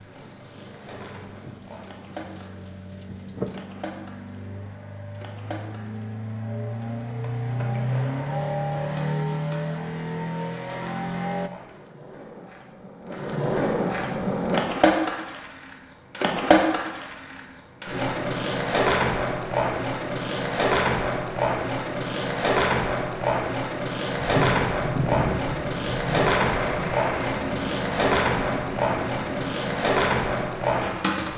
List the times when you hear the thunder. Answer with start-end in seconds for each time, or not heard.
0.2-3.6, 24.1-27.0.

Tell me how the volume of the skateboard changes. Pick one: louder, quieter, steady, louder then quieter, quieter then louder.
louder.